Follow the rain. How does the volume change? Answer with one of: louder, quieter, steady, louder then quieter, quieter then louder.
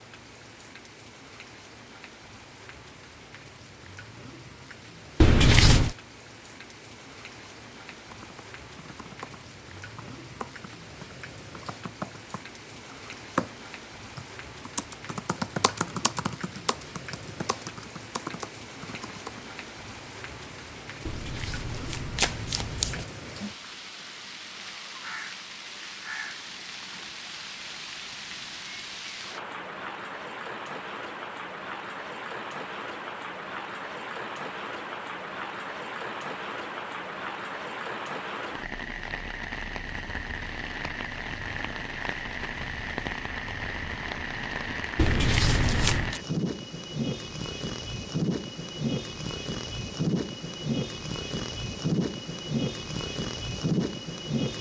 louder.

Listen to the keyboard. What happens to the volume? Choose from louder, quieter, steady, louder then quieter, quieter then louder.
louder then quieter.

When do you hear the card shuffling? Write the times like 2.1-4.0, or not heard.
5.2-6.0, 21.1-23.1, 45.0-46.2.